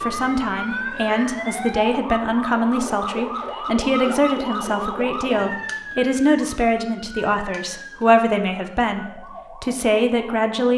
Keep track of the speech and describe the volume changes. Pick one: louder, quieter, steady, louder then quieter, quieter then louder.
steady.